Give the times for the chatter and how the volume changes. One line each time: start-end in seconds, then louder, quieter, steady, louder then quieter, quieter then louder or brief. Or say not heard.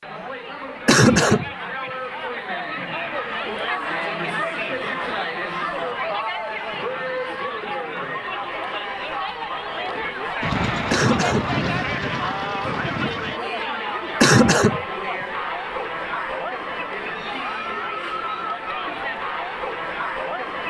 0.0-20.6 steady.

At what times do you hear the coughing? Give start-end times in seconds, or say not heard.
0.8-1.5, 10.9-11.6, 14.2-14.8.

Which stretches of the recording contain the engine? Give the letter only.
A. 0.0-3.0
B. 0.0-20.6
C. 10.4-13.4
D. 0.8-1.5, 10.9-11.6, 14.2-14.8
C.